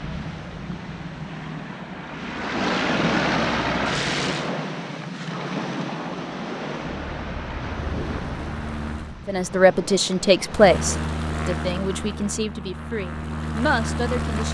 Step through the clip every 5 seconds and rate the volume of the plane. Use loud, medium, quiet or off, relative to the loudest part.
loud, medium, loud.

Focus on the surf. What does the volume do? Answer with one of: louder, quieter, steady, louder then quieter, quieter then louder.
louder then quieter.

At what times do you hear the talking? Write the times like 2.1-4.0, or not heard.
9.2-14.4.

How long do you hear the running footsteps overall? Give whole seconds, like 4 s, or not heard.
not heard.